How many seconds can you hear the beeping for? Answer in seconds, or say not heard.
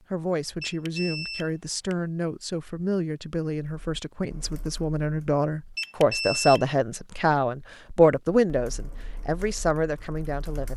2 s.